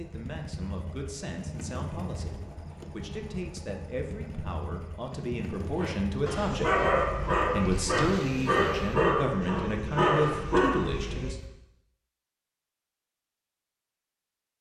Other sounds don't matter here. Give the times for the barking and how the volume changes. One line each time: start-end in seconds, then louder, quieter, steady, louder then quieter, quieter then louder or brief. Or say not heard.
5.8-11.4 steady.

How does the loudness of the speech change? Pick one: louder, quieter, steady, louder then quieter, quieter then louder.
louder.